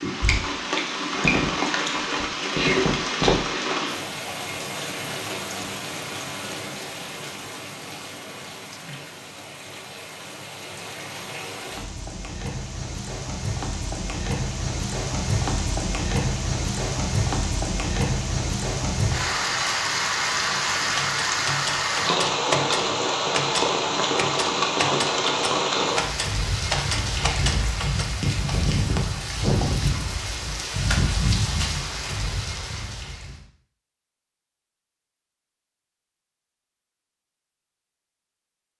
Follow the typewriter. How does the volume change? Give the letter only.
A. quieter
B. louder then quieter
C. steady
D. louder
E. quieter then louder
C.